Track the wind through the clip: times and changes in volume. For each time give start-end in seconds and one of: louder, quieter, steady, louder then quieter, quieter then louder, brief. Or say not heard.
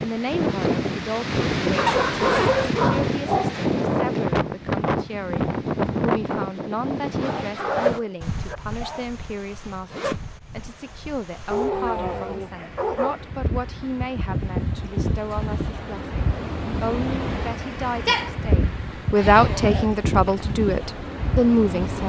0.0-22.0 quieter then louder.